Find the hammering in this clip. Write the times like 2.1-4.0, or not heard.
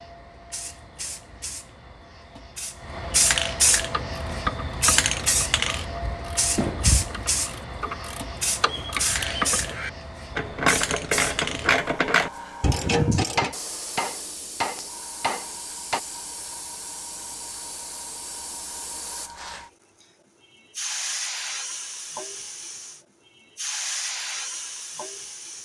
6.5-7.0, 13.3-16.0.